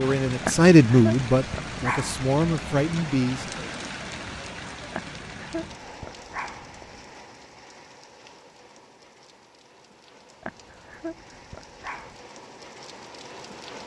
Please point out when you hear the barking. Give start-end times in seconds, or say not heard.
0.4-2.3, 4.9-7.0, 10.4-12.2.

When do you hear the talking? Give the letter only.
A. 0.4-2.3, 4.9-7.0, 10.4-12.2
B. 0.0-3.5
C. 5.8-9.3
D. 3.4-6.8
B.